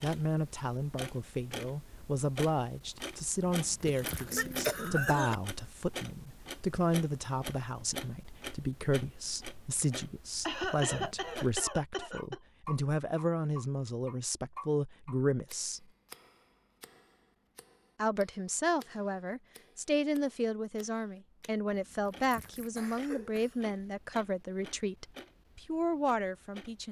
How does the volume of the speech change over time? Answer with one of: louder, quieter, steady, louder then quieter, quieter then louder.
steady.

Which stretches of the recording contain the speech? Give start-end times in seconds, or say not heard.
0.0-15.8, 17.9-26.8.